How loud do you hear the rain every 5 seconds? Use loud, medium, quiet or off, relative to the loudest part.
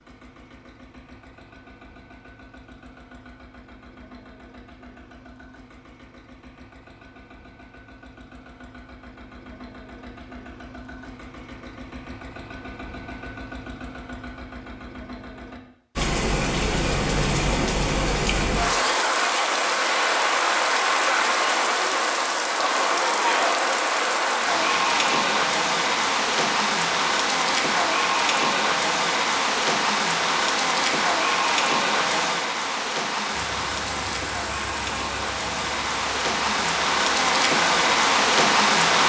off, off, off, loud, loud, loud, loud, loud.